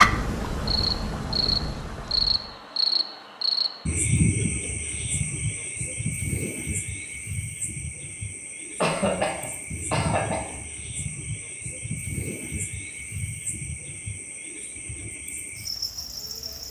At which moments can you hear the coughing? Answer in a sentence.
You can hear the coughing from 8.8 to 10.6 s.